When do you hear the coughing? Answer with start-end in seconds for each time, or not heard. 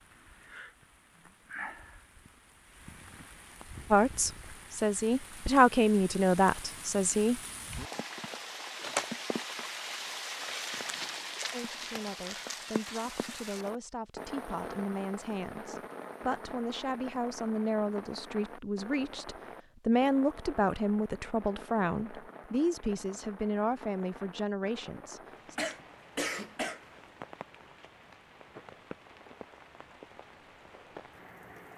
25.6-26.9.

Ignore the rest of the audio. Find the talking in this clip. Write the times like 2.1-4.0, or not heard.
3.9-7.4, 11.5-25.6.